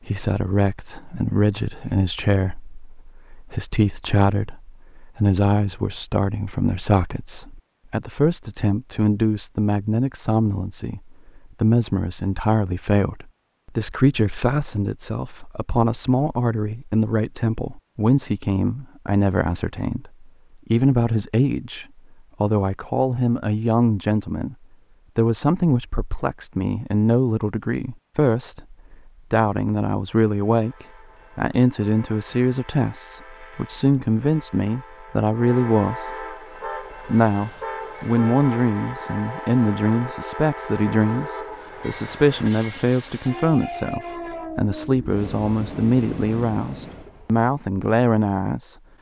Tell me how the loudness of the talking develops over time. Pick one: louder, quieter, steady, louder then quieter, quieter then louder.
steady.